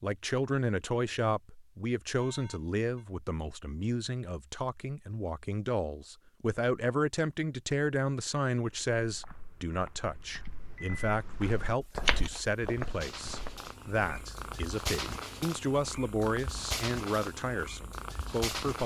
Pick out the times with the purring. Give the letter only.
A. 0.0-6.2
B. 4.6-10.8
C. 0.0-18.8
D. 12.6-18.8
D.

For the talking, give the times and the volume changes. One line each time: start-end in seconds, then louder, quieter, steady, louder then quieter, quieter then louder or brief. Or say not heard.
0.0-18.8 steady.